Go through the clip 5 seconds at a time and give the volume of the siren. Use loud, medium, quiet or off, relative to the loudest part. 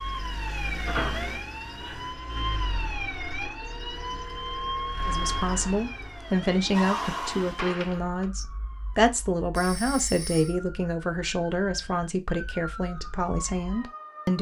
loud, loud, medium.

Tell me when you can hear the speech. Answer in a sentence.
The speech can be heard from 5.0 to 14.3 s.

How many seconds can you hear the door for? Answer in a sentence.
You can hear the door for 2 seconds altogether.